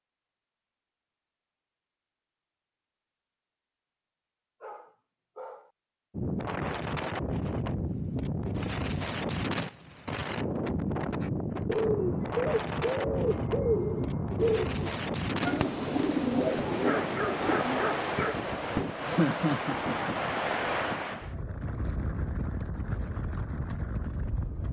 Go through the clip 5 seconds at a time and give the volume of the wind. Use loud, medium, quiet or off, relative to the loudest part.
off, loud, loud, loud, loud.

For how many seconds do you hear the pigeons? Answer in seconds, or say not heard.
7 s.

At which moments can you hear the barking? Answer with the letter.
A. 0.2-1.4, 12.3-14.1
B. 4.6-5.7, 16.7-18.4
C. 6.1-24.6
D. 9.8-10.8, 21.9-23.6
B.